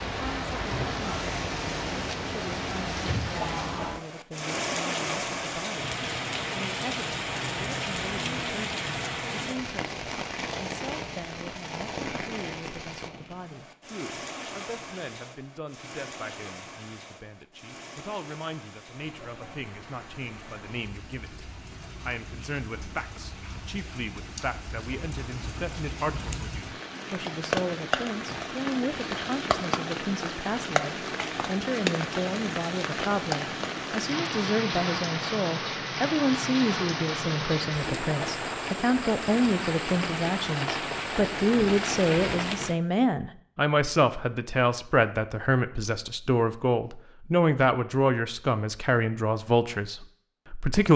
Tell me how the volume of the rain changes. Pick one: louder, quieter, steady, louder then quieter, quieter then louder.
quieter then louder.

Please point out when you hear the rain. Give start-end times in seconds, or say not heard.
0.0-42.8.